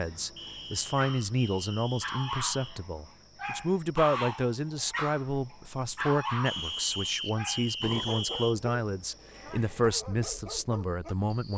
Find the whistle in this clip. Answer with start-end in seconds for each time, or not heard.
0.3-2.8, 6.5-8.6.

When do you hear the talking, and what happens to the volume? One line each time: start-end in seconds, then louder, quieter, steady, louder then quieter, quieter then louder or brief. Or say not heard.
0.0-11.5 steady.